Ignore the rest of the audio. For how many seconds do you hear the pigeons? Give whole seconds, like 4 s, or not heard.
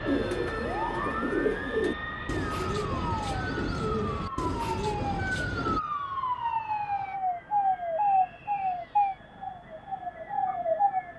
6 s.